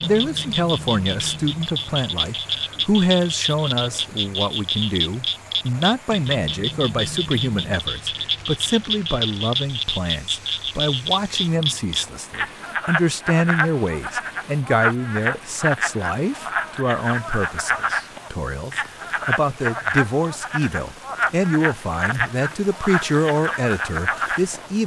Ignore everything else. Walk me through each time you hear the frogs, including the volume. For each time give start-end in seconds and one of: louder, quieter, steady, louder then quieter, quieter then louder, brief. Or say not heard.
0.0-24.7 steady.